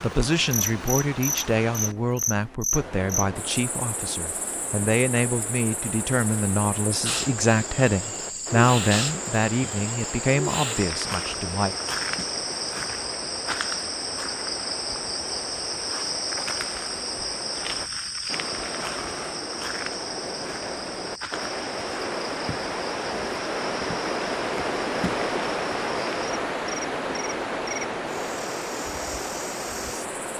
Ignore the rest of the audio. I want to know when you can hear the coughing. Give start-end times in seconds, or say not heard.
not heard.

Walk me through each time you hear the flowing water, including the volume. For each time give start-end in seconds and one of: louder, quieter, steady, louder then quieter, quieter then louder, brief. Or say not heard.
0.0-30.3 louder.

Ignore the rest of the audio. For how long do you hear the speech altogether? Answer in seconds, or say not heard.
12 s.